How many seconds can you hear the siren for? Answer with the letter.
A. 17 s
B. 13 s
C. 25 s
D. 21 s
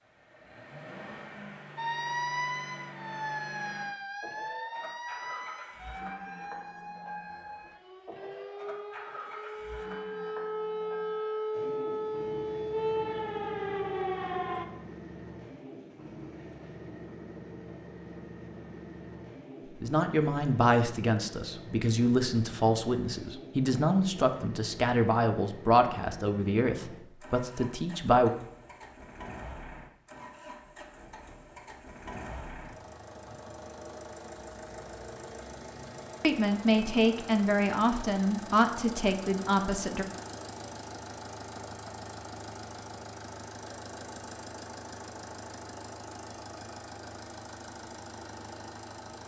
B.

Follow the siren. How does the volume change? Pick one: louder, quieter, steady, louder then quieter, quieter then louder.
quieter then louder.